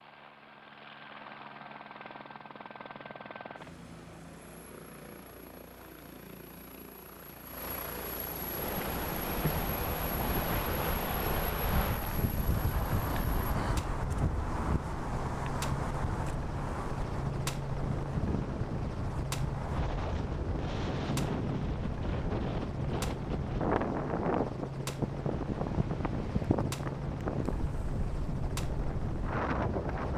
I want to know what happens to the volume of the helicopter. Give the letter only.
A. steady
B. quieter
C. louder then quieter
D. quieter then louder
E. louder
E.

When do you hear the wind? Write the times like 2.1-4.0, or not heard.
8.5-30.1.